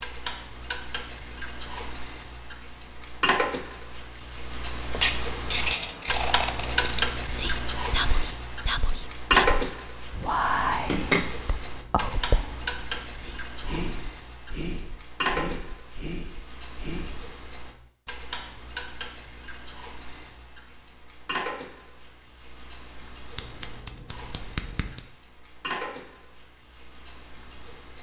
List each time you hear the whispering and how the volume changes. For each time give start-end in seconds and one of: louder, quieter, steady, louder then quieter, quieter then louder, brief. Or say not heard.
6.6-17.2 quieter.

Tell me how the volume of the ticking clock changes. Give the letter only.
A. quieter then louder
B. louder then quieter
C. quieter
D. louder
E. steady
B.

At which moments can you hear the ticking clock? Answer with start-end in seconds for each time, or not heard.
0.0-27.9.